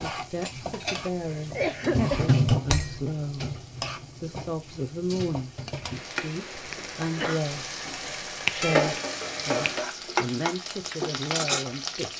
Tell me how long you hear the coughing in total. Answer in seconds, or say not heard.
2 s.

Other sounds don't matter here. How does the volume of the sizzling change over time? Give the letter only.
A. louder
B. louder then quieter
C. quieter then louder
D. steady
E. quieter
C.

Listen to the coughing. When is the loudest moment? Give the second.
2 s.